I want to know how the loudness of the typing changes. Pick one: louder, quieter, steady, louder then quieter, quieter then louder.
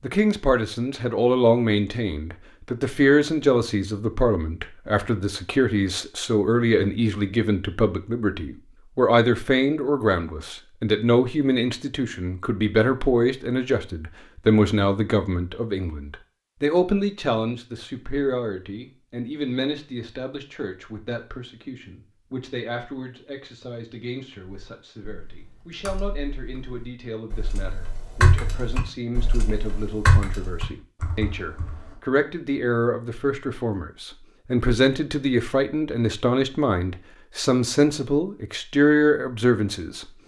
louder then quieter.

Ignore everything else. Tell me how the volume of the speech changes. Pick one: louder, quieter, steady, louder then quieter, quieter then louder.
quieter then louder.